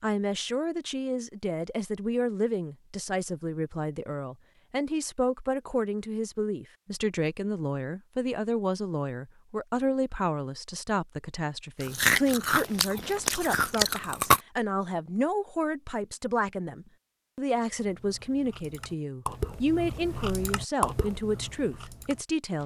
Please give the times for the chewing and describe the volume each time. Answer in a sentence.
You can hear the chewing briefly from 11.8 to 14.4 s; and from 17.8 to 22.6 s, getting louder then quieter.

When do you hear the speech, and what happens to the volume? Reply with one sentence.
You can hear the speech from 0.0 to 22.6 s, at a steady volume.